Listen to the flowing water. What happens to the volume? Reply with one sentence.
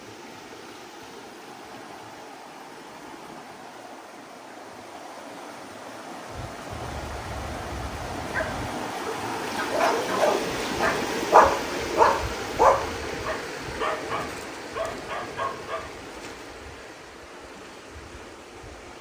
The loudness of the flowing water goes up, then down.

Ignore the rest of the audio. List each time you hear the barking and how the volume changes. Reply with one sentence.
The barking can be heard from 6.3 to 15.9 s, getting louder then quieter.